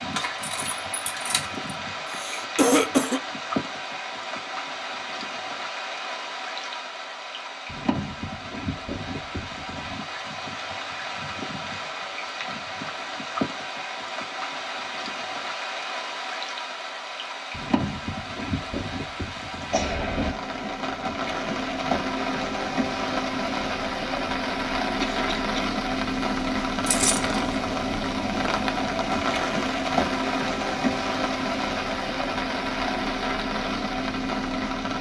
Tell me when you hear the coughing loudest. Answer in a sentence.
The loudest moment of the coughing is at 3 seconds.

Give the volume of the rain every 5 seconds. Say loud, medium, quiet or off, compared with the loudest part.
medium, medium, medium, medium, loud, loud, loud.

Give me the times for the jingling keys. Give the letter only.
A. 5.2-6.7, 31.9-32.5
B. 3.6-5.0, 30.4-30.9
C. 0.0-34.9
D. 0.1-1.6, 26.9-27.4
D.